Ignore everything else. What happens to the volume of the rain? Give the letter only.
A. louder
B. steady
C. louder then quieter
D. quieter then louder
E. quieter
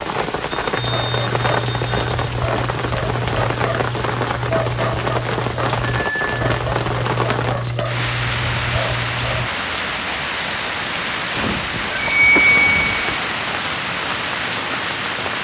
B.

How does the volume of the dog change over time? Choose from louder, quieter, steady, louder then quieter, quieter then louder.
steady.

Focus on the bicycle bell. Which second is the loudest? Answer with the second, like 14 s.
12 s.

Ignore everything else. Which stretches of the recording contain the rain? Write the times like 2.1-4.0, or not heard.
0.0-15.3.